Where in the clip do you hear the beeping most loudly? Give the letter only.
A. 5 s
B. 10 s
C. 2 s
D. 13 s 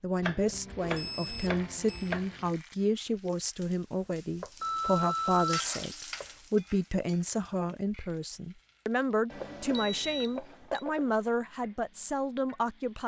A.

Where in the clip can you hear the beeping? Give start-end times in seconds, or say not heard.
0.8-2.1, 4.6-5.7, 9.3-10.8.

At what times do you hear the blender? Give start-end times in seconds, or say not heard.
not heard.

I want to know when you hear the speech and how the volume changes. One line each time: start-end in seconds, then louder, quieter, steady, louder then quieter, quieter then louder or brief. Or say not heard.
0.0-13.0 steady.